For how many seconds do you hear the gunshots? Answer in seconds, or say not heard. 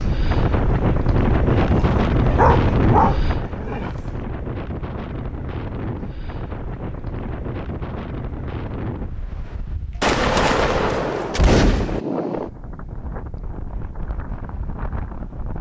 2 s.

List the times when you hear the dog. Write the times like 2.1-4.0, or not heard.
1.6-4.2.